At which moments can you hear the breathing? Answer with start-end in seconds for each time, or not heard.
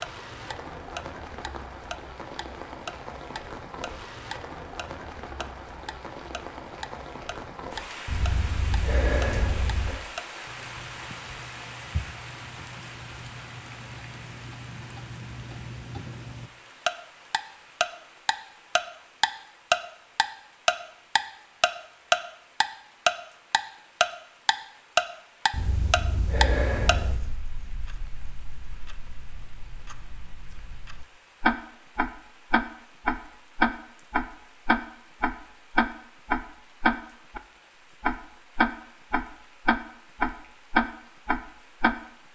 8.1-9.9, 25.5-27.2.